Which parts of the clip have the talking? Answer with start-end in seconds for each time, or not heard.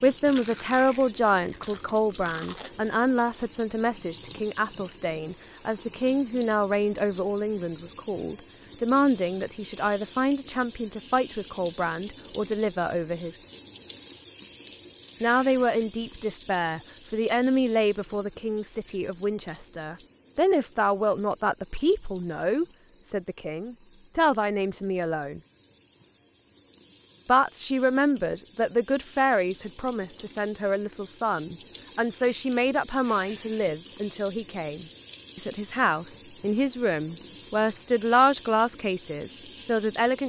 0.0-13.3, 15.2-25.4, 27.2-40.2.